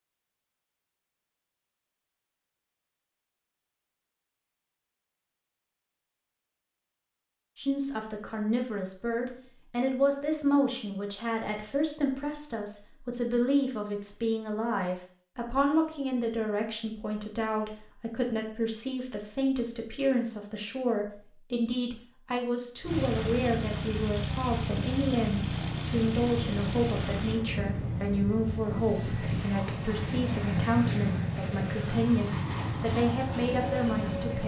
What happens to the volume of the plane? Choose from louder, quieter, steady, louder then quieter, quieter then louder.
steady.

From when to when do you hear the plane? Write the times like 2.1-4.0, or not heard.
22.8-34.4.